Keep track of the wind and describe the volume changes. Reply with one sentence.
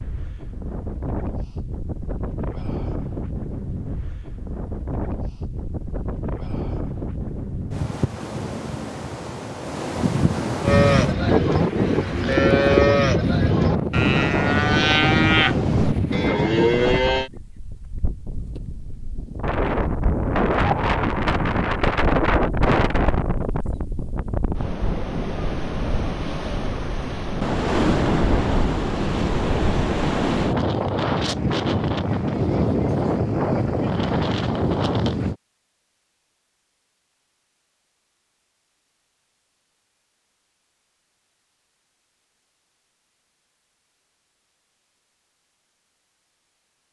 The volume of the wind goes up.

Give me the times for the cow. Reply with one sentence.
You can hear the cow from 10.6 to 17.3 s.